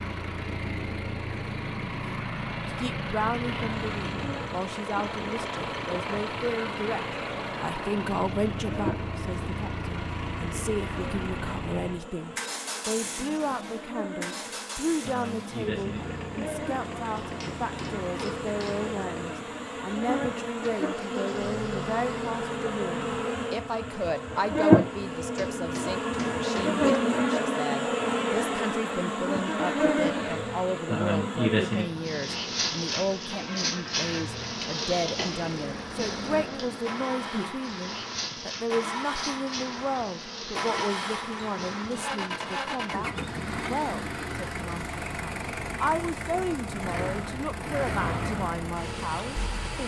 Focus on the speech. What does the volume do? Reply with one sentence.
The loudness of the speech stays about the same.